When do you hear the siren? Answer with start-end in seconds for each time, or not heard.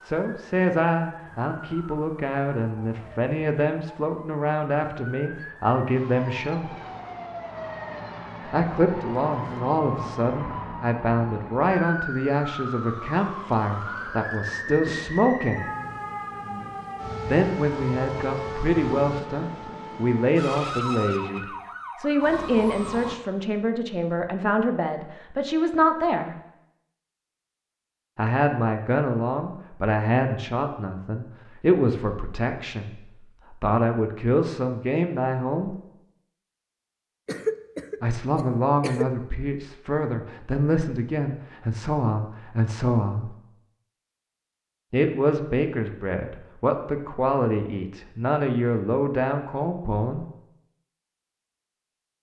0.0-23.1.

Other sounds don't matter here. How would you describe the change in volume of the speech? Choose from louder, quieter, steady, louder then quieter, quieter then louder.
steady.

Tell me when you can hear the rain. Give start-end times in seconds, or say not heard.
not heard.